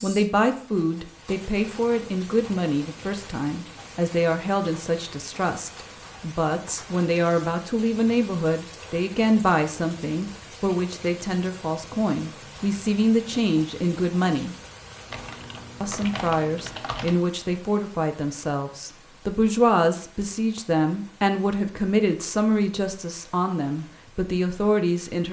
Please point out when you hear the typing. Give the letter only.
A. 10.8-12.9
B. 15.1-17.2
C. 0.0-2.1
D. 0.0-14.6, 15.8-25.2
B.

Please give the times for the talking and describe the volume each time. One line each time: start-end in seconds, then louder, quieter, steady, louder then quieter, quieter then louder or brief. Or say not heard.
0.0-14.6 steady
15.8-25.2 steady.